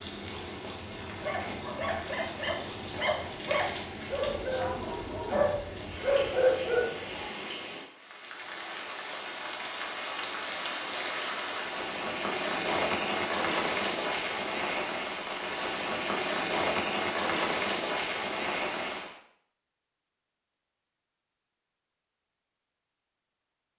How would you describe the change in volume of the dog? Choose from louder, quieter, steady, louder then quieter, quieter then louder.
louder.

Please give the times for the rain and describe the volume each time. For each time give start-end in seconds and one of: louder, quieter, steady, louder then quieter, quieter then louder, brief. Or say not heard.
0.0-19.1 louder.